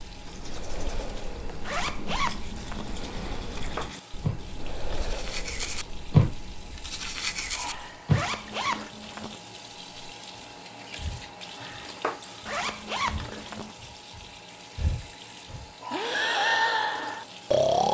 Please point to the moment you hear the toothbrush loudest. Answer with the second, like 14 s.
6 s.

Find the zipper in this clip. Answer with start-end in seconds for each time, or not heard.
1.6-3.0, 8.1-9.4, 12.4-13.8.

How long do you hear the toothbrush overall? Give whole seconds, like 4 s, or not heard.
8 s.